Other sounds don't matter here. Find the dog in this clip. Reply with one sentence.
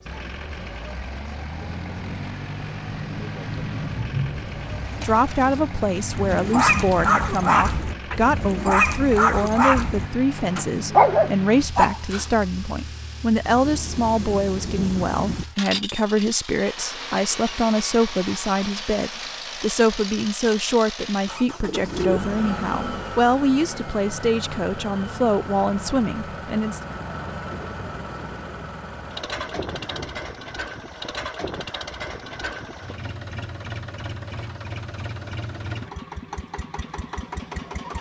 You can hear the dog from 6.2 to 12.4 s.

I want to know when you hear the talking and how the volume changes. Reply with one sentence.
The talking can be heard from 5.0 to 26.8 s, at a steady volume.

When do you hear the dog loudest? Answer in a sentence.
The volume of the dog peaks at 11 seconds.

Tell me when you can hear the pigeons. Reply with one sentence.
The pigeons can be heard from 4.5 to 7.0 s and from 21.6 to 23.2 s.